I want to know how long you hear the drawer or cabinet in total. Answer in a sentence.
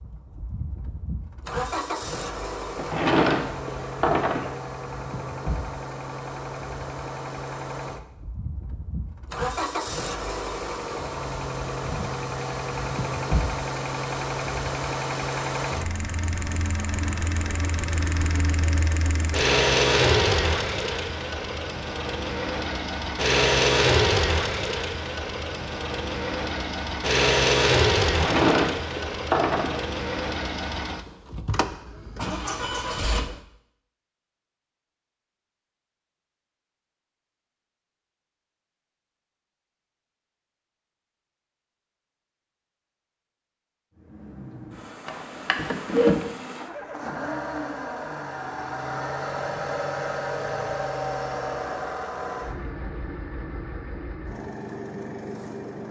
The drawer or cabinet can be heard for 5 seconds in total.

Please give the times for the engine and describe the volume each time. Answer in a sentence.
The engine can be heard from 0.0 to 33.4 s, getting louder; and from 44.0 to 55.8 s, getting louder then quieter.